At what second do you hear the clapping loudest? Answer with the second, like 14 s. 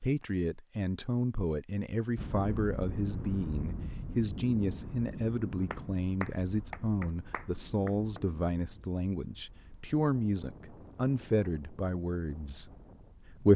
6 s.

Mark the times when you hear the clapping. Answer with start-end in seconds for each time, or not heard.
5.7-8.2.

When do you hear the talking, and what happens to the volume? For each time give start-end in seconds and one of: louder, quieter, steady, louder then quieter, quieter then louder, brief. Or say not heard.
0.0-13.5 steady.